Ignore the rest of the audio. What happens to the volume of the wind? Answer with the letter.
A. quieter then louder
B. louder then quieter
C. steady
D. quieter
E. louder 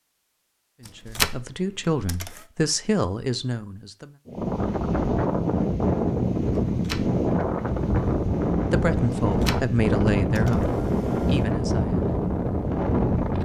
C.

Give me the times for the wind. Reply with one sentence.
You can hear the wind from 4.2 to 13.3 s.